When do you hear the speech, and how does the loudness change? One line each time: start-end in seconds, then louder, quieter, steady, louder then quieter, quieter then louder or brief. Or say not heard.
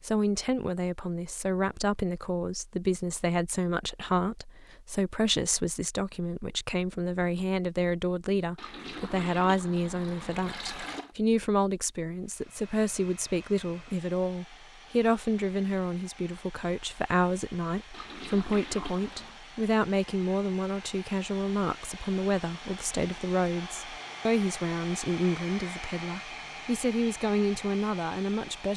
0.0-28.7 steady.